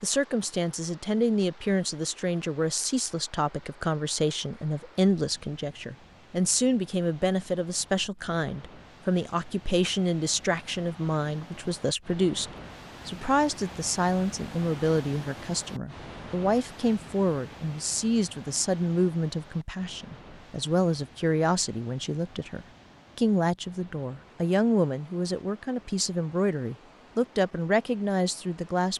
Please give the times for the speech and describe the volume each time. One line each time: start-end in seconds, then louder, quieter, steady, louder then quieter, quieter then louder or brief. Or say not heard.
0.0-28.9 steady.